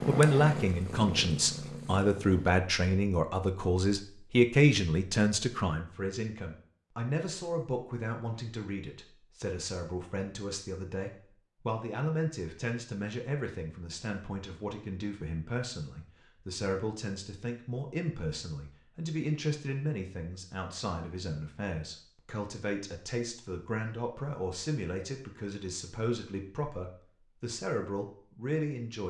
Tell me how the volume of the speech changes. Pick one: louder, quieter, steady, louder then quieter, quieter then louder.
quieter.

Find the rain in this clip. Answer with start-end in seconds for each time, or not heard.
not heard.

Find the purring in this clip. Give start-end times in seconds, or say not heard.
0.0-2.5.